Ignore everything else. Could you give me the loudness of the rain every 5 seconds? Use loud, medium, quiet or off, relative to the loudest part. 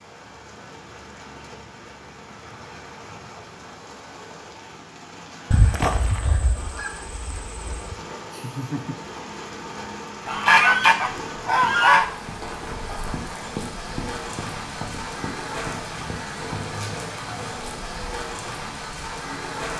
medium, medium, loud, loud.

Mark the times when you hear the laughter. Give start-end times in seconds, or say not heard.
8.3-8.9.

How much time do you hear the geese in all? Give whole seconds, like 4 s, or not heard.
4 s.